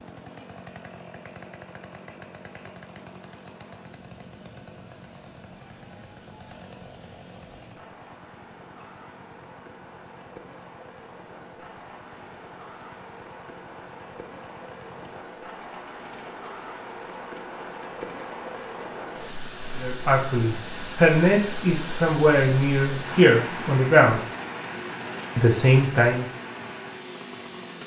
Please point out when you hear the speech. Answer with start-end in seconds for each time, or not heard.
19.8-24.2, 25.4-26.2.